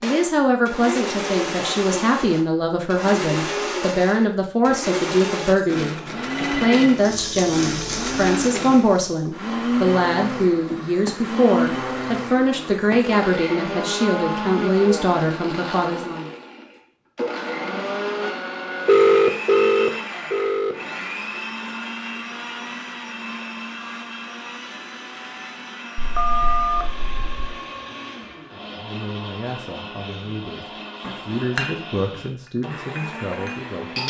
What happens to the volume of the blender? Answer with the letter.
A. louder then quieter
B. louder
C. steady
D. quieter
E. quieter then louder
D.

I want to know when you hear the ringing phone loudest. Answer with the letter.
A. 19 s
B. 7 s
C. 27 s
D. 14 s
A.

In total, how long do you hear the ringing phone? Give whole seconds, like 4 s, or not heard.
4 s.